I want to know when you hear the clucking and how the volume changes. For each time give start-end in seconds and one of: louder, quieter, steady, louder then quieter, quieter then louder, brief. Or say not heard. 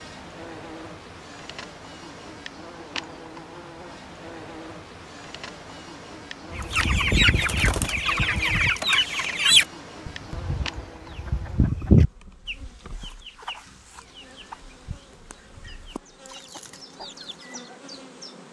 6.5-17.7 quieter.